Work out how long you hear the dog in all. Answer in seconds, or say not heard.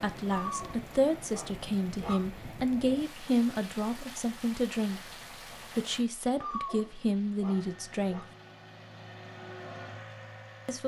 4 s.